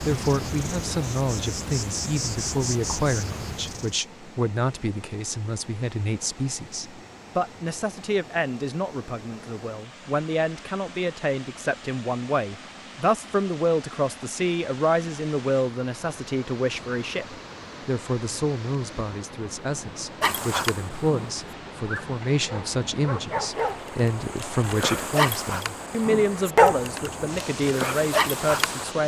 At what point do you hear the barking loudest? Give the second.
27 s.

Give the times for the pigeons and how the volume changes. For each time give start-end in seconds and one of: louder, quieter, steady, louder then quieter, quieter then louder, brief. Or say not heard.
not heard.